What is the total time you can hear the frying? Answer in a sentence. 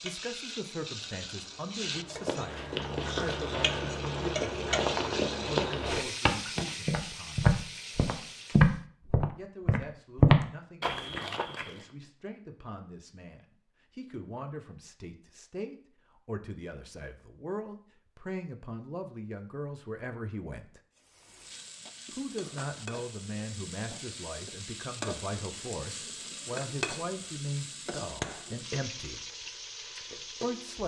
You can hear the frying for 19 seconds altogether.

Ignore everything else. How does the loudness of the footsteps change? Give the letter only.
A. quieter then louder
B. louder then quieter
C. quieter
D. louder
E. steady
D.